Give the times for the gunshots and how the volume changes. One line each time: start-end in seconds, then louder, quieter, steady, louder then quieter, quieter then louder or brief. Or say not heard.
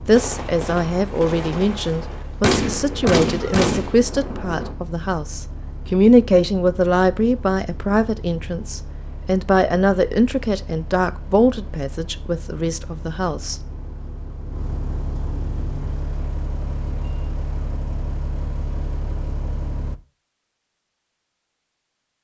0.1-4.8 louder.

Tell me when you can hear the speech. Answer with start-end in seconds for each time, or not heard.
0.1-13.6.